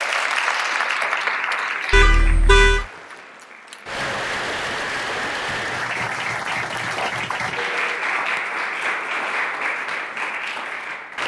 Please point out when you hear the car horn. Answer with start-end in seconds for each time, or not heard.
1.9-2.9, 7.0-7.8.